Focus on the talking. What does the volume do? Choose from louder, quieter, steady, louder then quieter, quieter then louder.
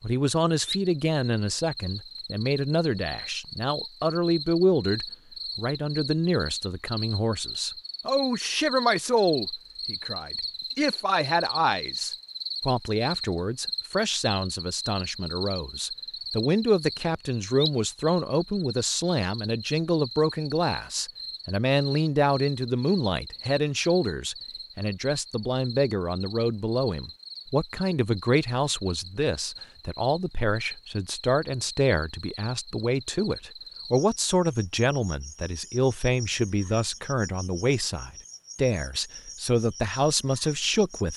steady.